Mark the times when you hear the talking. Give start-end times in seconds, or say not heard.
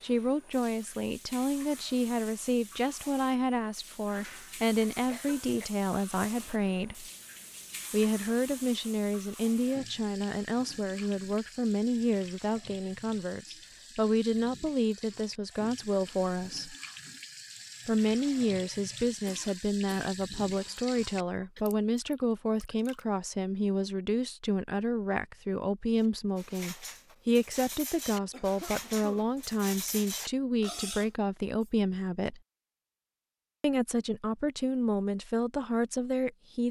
0.0-7.0, 7.9-16.8, 17.9-32.4, 33.6-36.6.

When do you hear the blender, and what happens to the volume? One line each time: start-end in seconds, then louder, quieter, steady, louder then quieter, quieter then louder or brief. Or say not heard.
not heard.